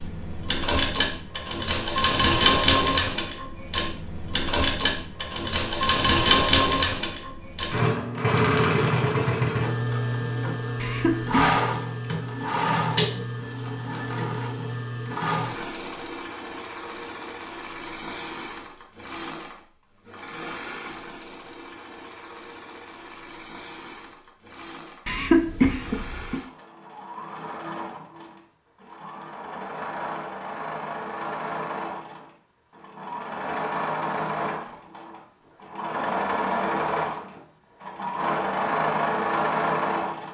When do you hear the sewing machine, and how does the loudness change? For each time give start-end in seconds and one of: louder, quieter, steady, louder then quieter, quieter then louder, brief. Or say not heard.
0.0-40.2 quieter then louder.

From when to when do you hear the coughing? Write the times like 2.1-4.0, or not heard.
10.8-11.6, 25.1-26.4.